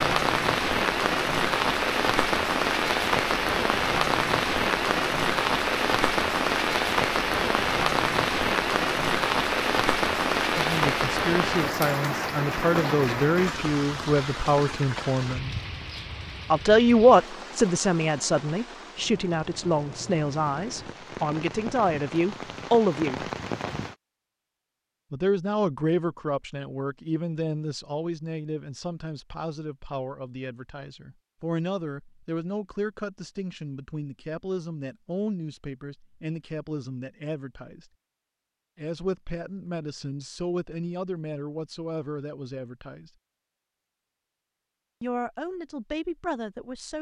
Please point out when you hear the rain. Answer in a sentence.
You can hear the rain from 0.0 to 23.9 s.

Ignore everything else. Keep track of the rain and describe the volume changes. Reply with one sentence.
The loudness of the rain goes down.